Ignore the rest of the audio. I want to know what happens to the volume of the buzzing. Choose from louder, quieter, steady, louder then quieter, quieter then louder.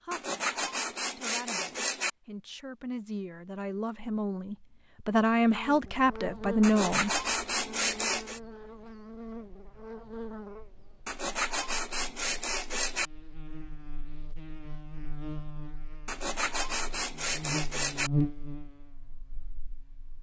quieter then louder.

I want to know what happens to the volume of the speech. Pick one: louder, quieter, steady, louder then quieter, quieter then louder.
louder.